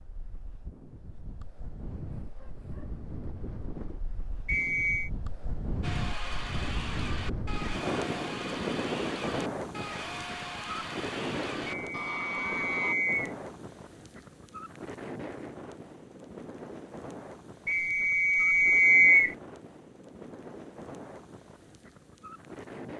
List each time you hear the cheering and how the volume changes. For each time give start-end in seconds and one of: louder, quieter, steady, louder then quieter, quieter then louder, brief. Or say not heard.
5.8-12.9 steady.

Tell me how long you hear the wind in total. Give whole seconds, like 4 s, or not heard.
23 s.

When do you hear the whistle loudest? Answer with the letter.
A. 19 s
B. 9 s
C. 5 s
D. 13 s
A.